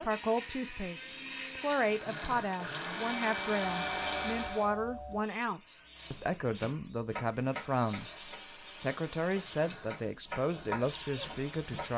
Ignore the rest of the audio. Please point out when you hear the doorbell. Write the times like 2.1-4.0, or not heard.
3.5-5.2.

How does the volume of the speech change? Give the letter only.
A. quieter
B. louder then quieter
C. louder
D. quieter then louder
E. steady
E.